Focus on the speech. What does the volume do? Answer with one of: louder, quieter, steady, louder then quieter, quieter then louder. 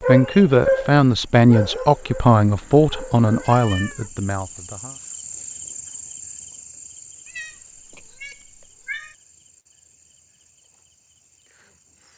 quieter.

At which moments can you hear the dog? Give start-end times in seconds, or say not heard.
0.0-3.5.